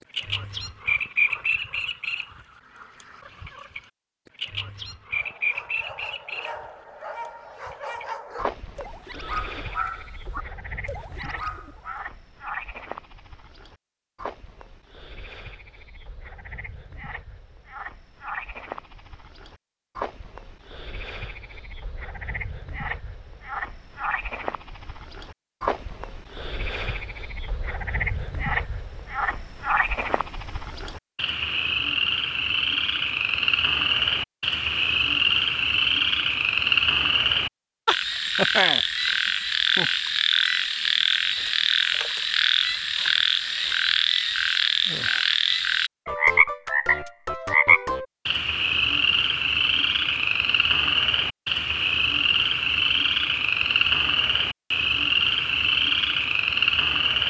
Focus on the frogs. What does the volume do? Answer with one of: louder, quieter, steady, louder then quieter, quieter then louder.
quieter then louder.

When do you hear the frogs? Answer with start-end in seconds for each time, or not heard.
0.1-57.2.